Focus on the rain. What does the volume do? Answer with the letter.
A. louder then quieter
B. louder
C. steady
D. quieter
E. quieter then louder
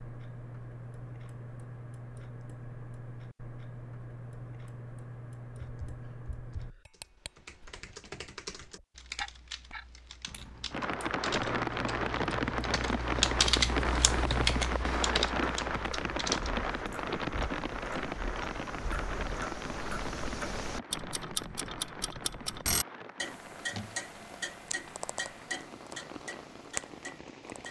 D.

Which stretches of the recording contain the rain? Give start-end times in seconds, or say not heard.
10.7-27.6.